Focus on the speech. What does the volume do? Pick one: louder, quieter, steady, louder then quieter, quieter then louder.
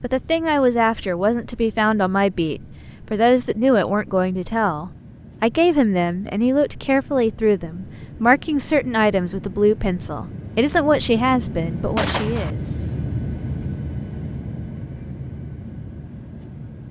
steady.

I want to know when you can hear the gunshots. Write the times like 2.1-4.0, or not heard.
11.9-12.5.